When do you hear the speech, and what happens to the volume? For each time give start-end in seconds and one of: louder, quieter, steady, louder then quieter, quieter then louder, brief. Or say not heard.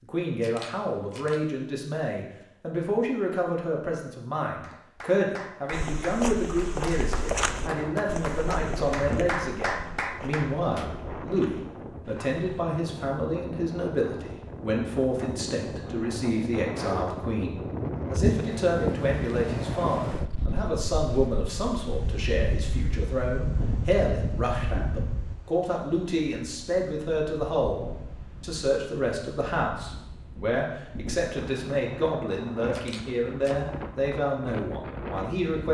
0.0-35.7 steady.